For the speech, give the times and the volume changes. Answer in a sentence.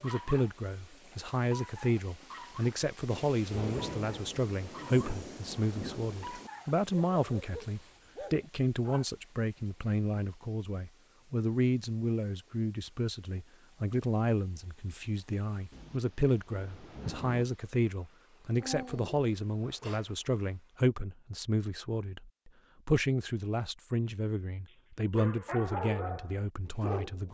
You can hear the speech from 0.0 to 27.3 s, at a steady volume.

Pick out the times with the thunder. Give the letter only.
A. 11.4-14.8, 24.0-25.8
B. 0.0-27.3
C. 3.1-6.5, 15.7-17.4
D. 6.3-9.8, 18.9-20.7
C.